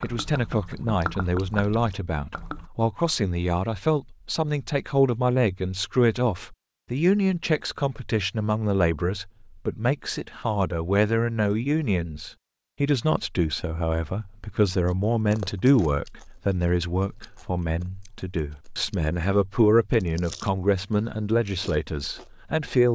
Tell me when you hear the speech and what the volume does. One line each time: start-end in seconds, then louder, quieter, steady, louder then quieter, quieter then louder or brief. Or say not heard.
0.0-22.9 steady.